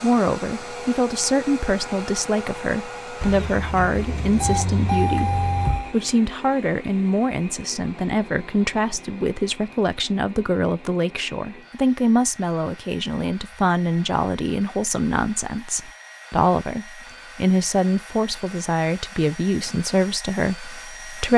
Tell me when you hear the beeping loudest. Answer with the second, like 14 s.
5 s.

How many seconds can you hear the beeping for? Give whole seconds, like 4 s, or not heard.
3 s.